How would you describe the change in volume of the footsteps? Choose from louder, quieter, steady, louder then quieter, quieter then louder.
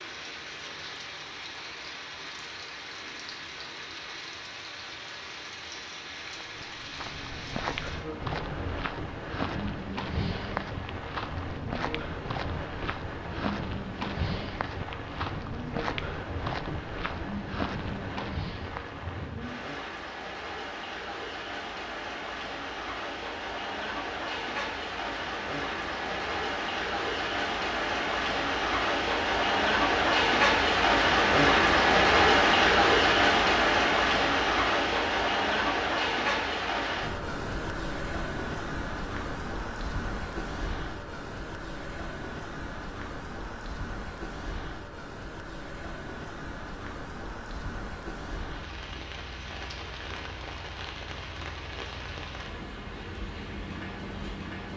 steady.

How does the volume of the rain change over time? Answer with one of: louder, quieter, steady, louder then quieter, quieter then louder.
louder then quieter.